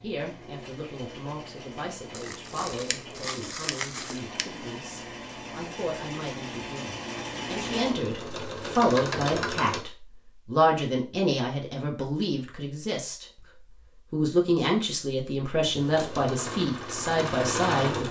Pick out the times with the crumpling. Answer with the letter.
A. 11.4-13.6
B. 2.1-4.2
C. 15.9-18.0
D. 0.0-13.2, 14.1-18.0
B.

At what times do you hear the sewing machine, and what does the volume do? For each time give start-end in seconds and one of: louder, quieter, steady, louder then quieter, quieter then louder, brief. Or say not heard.
0.0-9.8 louder
15.7-18.0 brief.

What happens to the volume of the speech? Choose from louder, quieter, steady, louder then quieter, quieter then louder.
louder.